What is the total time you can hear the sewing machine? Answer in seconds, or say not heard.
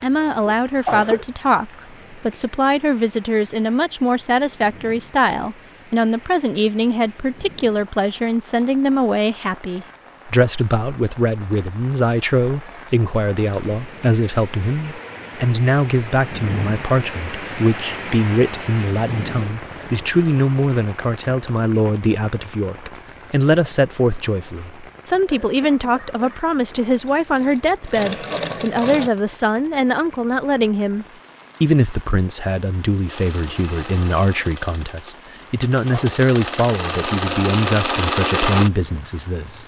9 s.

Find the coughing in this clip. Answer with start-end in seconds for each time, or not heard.
0.1-1.2, 25.3-26.5.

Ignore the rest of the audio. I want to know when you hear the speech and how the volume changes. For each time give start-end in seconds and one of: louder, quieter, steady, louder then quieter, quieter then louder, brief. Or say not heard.
0.0-39.6 steady.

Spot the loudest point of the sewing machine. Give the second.
38 s.